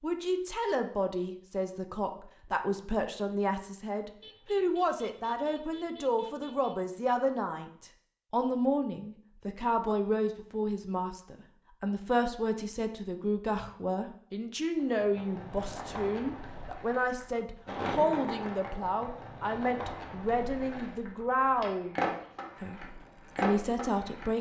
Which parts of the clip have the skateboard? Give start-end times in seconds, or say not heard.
14.8-24.3.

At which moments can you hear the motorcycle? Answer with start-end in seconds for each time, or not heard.
not heard.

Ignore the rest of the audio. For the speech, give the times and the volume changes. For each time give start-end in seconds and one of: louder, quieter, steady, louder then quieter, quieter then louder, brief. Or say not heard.
0.0-24.3 steady.